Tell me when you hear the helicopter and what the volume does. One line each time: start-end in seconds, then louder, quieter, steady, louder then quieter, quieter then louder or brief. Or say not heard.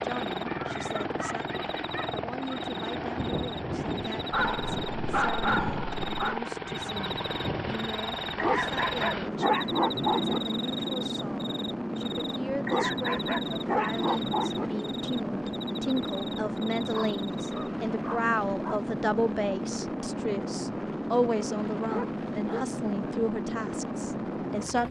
0.0-24.8 steady.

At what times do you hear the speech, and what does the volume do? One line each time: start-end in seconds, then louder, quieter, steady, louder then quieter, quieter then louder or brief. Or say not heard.
0.0-24.8 louder.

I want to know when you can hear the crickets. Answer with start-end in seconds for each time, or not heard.
0.2-17.7.